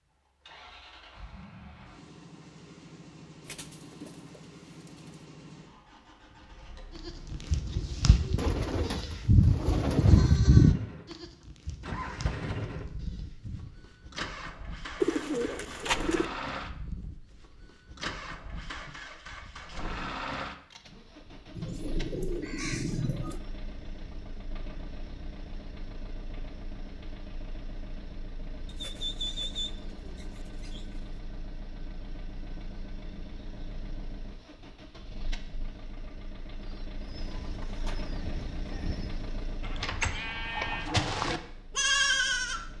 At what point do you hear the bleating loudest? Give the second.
11 s.